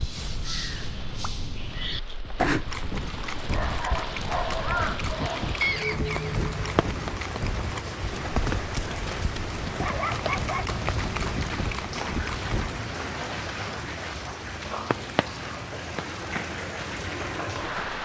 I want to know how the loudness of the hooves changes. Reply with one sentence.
The volume of the hooves stays about the same.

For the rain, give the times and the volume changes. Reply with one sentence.
The rain can be heard from 0.0 to 18.0 s, getting louder.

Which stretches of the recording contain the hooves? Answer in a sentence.
The hooves can be heard from 2.6 to 12.8 s.